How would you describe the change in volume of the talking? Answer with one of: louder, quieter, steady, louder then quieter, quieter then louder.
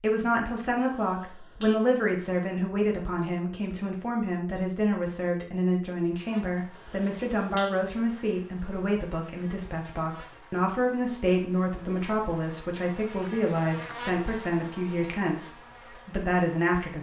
steady.